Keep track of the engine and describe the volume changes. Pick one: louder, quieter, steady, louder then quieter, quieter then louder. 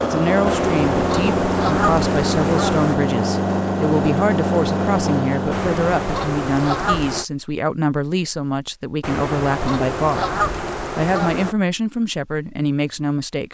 steady.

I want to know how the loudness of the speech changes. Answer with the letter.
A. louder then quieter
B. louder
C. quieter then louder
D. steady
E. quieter
D.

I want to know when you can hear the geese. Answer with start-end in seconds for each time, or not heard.
0.5-3.0, 5.5-7.2, 9.0-11.6.